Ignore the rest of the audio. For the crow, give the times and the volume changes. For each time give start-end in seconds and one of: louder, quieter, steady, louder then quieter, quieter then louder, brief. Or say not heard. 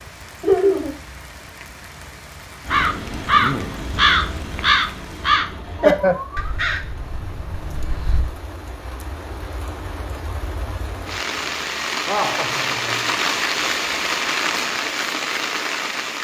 2.6-8.2 quieter.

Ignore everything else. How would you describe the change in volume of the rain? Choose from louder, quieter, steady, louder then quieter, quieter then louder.
louder.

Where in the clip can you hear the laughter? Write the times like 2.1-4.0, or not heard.
0.4-0.9, 5.8-6.5, 11.9-13.2.